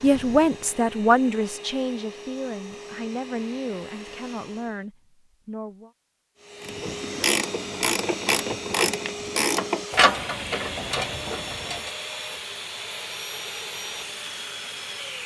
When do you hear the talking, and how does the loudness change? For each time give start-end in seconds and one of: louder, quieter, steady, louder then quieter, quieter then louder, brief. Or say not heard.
0.0-5.9 quieter.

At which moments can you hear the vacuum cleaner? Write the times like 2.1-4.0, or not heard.
0.0-4.8, 6.3-15.2.